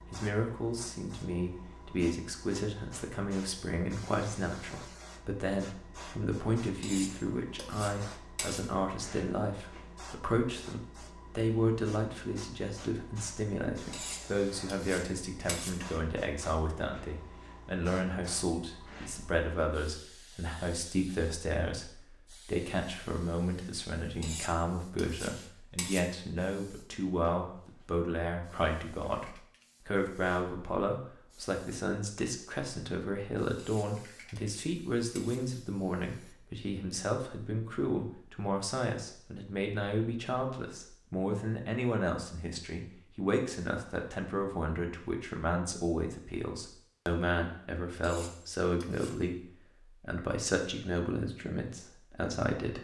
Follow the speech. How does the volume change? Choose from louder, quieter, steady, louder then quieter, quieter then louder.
steady.